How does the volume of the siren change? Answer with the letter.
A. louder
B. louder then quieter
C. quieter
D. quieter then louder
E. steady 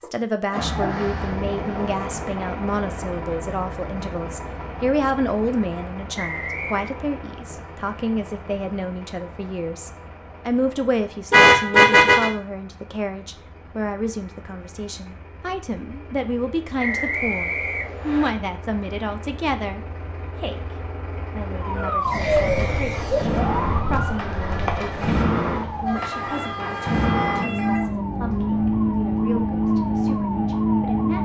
C.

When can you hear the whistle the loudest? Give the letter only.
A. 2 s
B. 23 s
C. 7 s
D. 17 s
D.